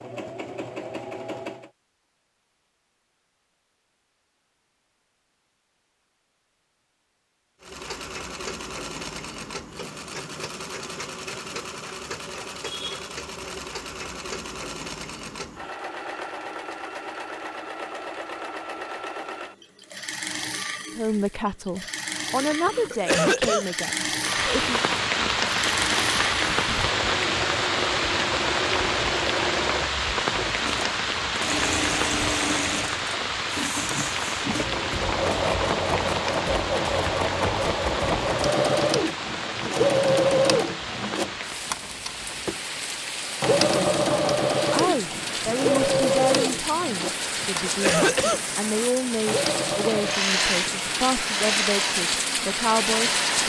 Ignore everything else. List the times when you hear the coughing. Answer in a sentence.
The coughing can be heard from 22.4 to 23.6 s and from 47.1 to 48.4 s.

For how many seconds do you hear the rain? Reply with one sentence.
The rain can be heard for 29 seconds in total.